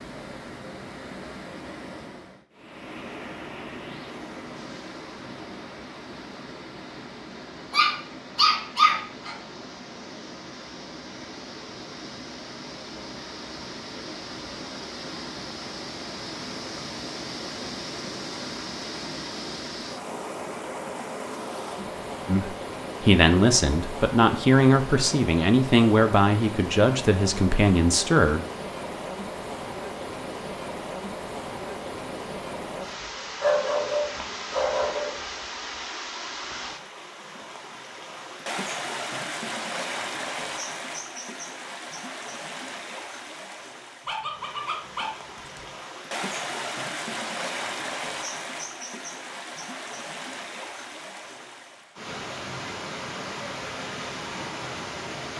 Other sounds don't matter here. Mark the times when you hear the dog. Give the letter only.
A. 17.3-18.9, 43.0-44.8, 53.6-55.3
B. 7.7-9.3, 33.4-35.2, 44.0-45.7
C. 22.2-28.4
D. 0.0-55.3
B.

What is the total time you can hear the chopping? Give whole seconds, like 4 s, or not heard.
not heard.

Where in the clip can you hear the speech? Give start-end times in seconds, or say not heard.
22.2-28.4.